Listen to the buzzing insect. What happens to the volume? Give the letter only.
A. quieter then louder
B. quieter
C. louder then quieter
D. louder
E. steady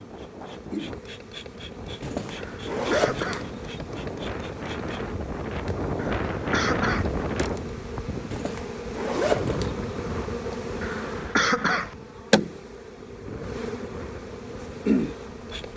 D.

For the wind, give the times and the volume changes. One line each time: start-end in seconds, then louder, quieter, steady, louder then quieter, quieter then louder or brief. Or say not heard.
0.0-15.7 louder then quieter.